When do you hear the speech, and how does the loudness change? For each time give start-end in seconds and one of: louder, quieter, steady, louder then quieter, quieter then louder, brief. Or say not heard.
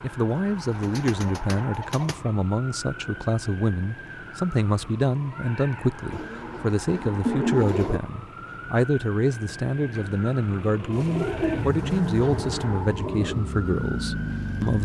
0.0-14.7 steady.